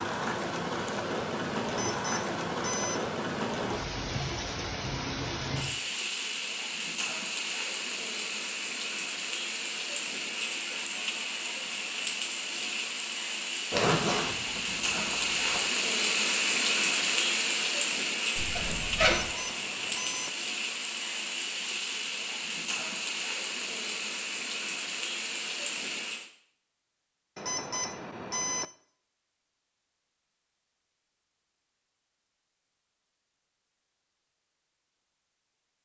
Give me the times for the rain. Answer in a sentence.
You can hear the rain from 0.0 to 26.3 s.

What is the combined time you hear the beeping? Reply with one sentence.
The beeping can be heard for 4 seconds in total.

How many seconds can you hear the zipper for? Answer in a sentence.
You can hear the zipper for 3 seconds altogether.